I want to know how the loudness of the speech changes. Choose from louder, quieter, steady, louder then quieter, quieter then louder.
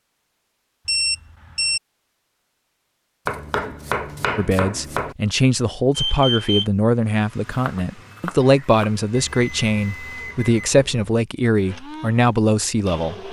steady.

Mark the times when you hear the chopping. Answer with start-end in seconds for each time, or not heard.
3.2-5.2, 7.5-8.9.